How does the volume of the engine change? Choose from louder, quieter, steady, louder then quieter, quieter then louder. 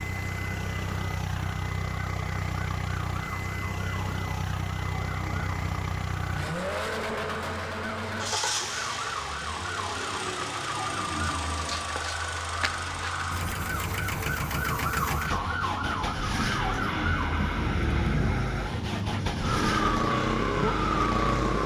steady.